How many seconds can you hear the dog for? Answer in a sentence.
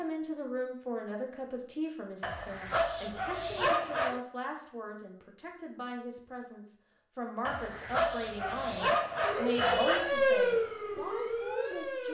You can hear the dog for 5 seconds altogether.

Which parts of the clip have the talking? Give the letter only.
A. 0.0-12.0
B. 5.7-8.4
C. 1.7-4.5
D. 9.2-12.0
A.